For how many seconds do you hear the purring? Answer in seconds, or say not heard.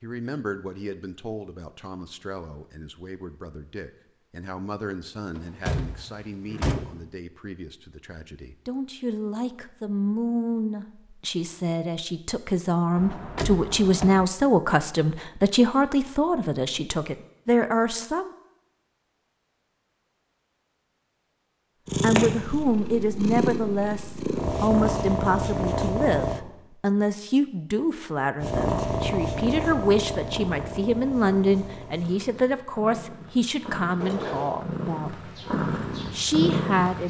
13 s.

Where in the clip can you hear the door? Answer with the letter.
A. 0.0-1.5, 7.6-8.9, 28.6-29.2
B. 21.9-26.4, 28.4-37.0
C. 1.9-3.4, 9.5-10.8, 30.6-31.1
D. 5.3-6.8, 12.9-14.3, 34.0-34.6
D.